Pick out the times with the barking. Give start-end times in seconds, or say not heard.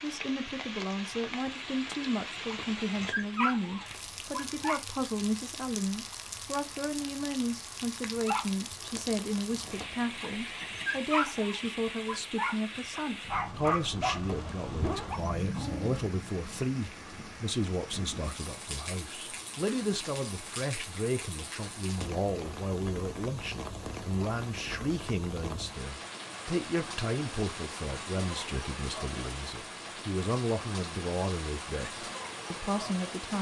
2.5-4.8, 8.2-15.9.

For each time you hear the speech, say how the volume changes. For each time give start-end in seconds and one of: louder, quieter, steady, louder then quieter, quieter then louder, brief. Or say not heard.
0.0-33.3 steady.